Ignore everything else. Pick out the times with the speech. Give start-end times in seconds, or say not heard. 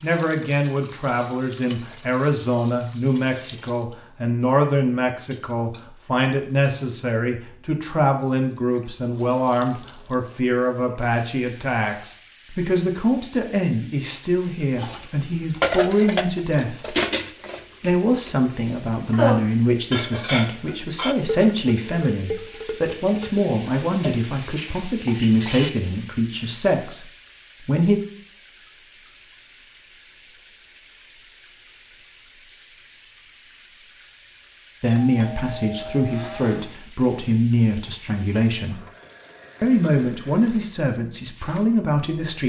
0.0-16.9, 17.8-28.0, 34.8-38.8, 39.6-42.4.